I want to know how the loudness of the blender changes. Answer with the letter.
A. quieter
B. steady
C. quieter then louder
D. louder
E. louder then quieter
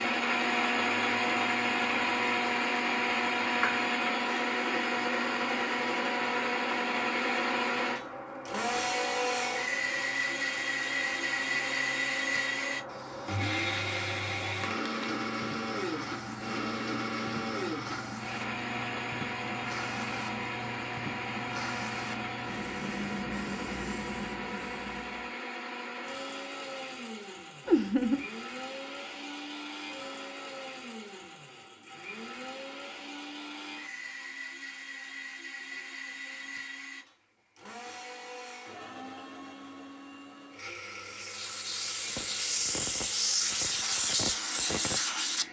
A.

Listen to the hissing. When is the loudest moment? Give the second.
44 s.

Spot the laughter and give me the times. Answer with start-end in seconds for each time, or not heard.
27.6-28.2.